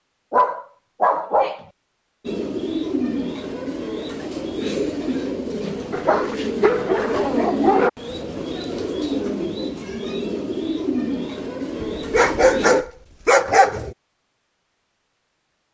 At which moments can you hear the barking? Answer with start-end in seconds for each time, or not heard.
0.3-1.6, 5.9-7.9, 11.8-13.9.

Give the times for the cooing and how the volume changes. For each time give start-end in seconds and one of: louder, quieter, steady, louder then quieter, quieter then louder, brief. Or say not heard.
2.2-12.8 steady.